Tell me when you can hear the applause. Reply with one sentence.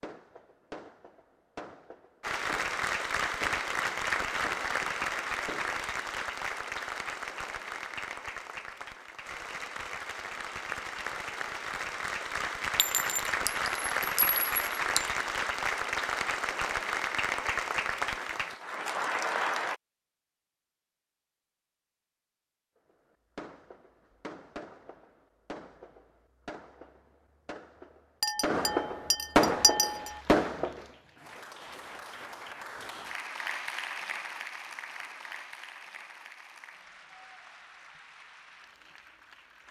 The applause can be heard from 2.2 to 19.8 s and from 29.7 to 39.6 s.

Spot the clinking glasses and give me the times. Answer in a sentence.
You can hear the clinking glasses from 12.8 to 15.1 s and from 28.2 to 30.2 s.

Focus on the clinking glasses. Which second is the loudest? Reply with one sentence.
The volume of the clinking glasses peaks at 30 seconds.